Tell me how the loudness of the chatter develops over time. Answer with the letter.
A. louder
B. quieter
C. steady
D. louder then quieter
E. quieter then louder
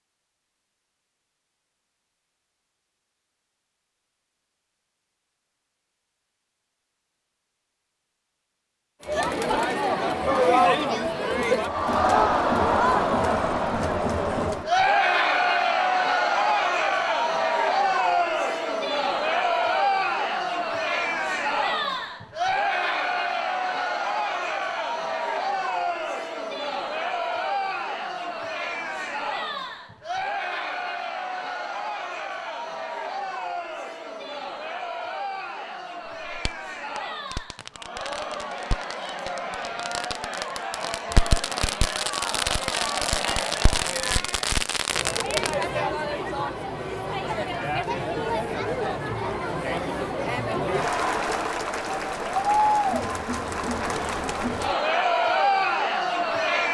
E.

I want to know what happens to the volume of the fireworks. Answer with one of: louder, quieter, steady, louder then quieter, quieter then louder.
louder.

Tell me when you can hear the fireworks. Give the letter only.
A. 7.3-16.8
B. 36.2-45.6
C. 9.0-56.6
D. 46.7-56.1
B.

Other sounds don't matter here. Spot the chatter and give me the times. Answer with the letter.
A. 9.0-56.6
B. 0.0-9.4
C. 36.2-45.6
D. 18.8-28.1
A.